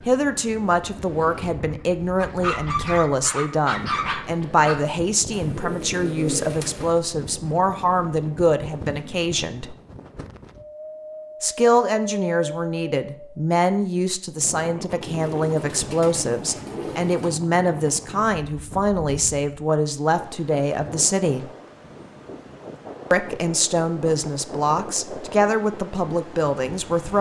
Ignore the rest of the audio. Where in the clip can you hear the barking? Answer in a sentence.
The barking can be heard from 2.1 to 4.8 s.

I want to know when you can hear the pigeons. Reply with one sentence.
The pigeons can be heard from 5.3 to 7.0 s and from 15.0 to 17.4 s.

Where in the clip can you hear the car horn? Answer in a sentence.
The car horn can't be heard in this clip.